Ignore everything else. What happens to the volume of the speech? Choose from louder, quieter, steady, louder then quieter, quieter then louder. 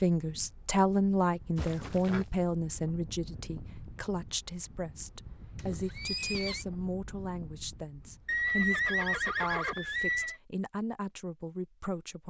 quieter.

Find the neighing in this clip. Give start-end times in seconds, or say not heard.
1.6-2.2, 5.5-6.7, 8.2-10.3.